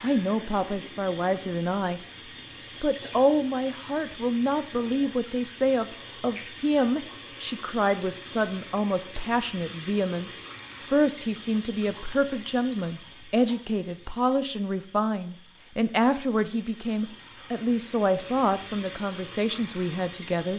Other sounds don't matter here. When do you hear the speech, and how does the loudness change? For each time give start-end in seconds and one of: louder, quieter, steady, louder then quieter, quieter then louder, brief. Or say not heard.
0.0-2.0 brief
2.8-20.5 steady.